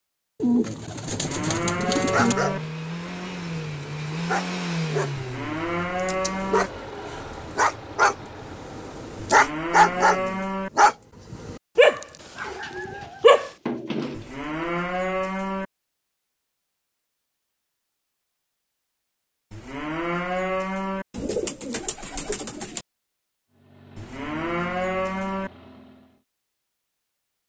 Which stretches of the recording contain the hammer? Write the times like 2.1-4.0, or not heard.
not heard.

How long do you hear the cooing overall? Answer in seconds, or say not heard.
6 s.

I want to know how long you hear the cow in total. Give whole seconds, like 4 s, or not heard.
9 s.